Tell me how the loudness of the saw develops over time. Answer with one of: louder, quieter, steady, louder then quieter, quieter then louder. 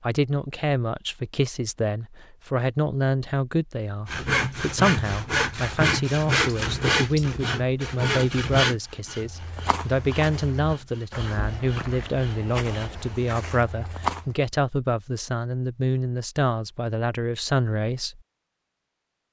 quieter.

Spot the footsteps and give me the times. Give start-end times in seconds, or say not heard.
9.1-14.4.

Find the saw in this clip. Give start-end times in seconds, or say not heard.
4.0-13.3.